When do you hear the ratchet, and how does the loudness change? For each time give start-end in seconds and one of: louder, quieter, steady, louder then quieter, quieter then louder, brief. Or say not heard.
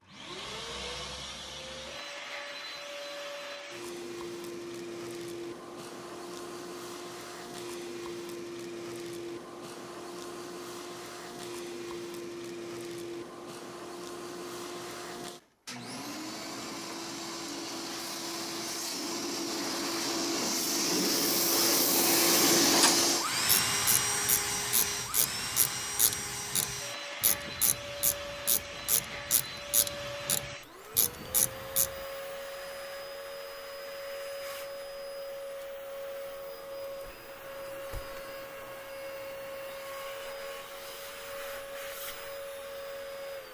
22.6-31.9 steady.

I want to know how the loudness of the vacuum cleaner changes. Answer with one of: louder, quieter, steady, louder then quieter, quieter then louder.
louder then quieter.